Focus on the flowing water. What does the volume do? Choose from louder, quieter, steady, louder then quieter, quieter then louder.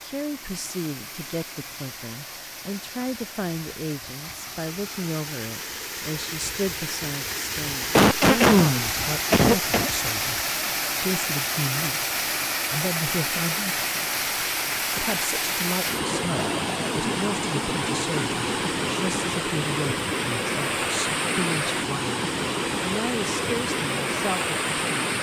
louder.